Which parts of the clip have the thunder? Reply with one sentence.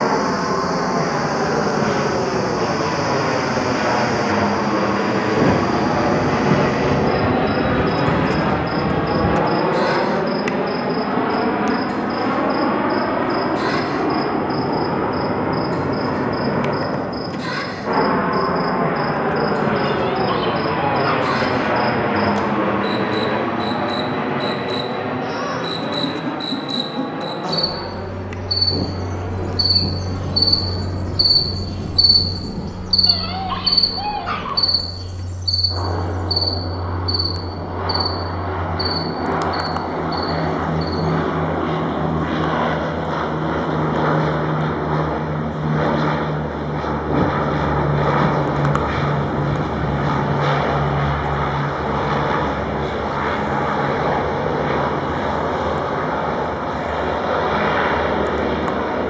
You can hear the thunder from 5.3 to 9.4 s, from 28.7 to 32.7 s and from 47.0 to 50.3 s.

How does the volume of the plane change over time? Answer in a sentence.
The volume of the plane goes down, then up.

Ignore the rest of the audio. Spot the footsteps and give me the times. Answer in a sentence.
The footsteps can't be heard in this clip.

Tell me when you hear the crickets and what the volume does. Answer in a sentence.
The crickets can be heard from 0.0 to 41.2 s, getting louder.